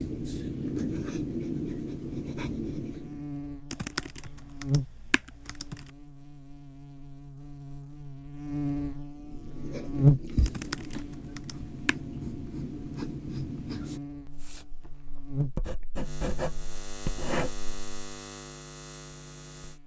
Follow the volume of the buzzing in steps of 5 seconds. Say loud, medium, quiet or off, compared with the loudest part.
medium, medium, loud, medium.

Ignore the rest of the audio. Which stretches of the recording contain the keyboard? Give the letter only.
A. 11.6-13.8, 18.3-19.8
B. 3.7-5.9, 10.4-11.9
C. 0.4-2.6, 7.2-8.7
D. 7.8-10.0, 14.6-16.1
B.